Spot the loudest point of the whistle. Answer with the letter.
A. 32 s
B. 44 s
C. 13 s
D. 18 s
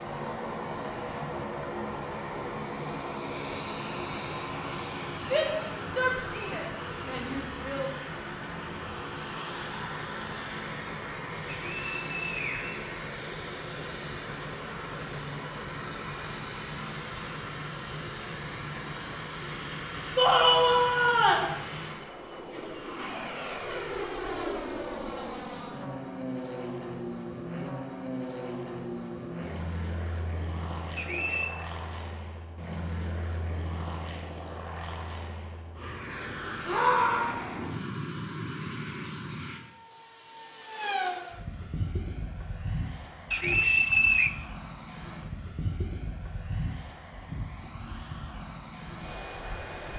B.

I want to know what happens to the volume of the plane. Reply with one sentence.
The volume of the plane stays about the same.